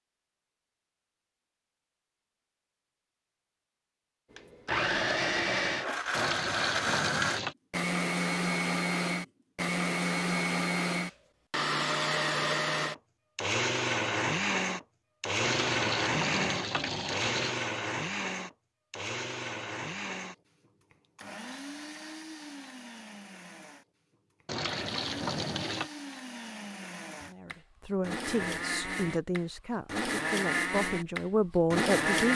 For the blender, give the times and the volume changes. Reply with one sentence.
The blender can be heard from 4.3 to 32.3 s, getting quieter then louder.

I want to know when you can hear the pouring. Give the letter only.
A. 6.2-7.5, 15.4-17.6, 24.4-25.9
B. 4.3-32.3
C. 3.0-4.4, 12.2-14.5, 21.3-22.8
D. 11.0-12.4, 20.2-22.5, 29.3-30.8
A.